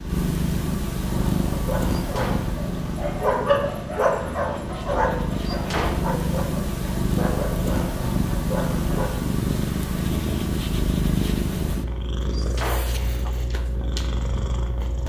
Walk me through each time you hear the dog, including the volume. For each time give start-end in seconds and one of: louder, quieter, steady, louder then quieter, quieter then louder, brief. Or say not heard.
1.1-9.3 louder then quieter.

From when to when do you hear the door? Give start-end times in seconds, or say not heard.
1.9-2.6, 5.5-6.5, 12.3-13.3.